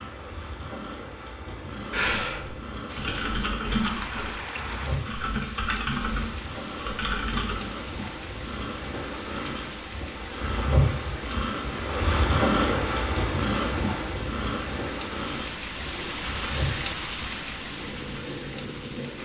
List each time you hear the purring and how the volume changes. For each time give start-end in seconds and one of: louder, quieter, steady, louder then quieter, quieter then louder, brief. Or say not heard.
0.0-19.1 louder then quieter.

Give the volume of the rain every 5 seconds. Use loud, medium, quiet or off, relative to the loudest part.
loud, medium, medium, loud.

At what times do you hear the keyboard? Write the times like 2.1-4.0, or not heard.
1.8-7.7.